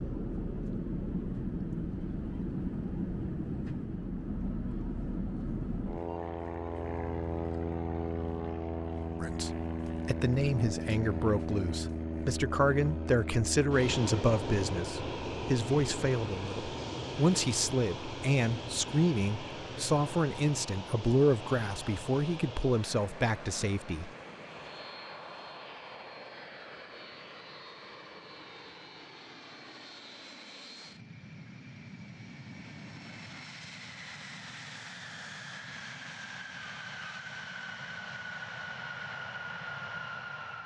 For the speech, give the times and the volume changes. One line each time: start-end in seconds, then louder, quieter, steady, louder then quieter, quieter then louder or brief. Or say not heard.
9.2-24.1 steady.